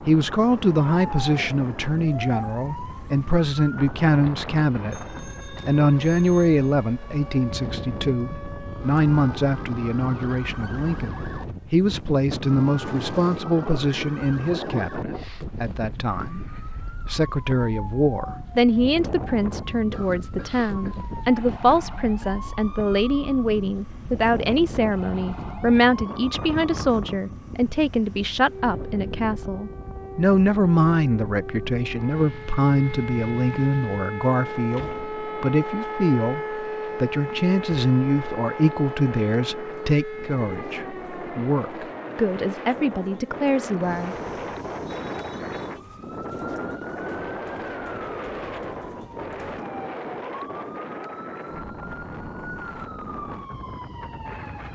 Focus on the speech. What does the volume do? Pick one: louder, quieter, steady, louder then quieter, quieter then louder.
steady.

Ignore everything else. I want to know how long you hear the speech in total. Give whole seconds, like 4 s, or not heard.
44 s.